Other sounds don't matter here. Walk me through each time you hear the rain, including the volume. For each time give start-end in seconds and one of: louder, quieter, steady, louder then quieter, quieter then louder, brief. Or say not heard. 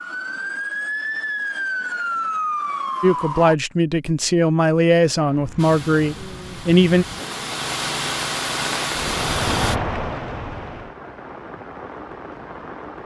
5.2-13.0 louder then quieter.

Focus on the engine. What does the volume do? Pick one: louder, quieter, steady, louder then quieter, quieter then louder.
louder.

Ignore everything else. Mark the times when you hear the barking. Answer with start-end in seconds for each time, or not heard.
not heard.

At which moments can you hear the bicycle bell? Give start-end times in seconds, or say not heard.
not heard.